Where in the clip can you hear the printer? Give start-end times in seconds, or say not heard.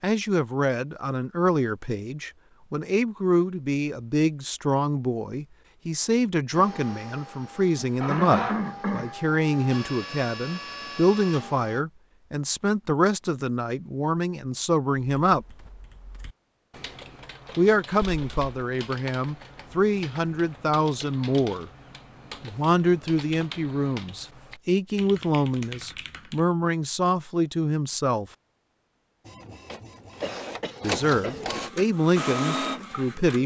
6.5-11.8, 29.2-33.4.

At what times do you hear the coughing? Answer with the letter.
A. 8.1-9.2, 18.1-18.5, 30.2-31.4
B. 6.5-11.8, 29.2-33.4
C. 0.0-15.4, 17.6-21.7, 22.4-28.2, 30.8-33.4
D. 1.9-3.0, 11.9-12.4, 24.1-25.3
A.